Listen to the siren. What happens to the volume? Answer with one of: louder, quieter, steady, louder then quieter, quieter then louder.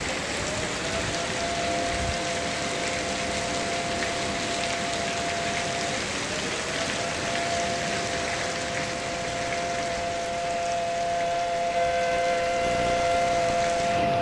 louder.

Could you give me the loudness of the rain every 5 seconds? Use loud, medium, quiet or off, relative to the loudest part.
loud, loud, medium.